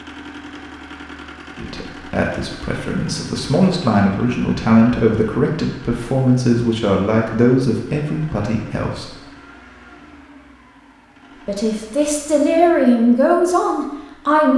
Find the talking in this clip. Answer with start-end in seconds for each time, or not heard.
1.6-9.1, 11.4-14.5.